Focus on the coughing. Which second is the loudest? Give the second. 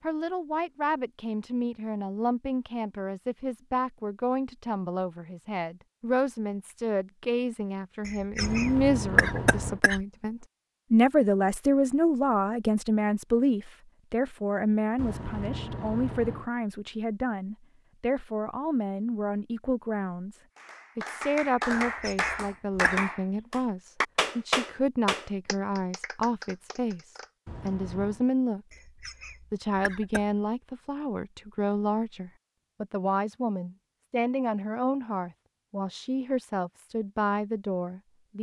9 s.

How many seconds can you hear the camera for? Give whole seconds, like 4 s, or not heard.
4 s.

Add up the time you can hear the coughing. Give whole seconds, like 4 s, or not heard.
5 s.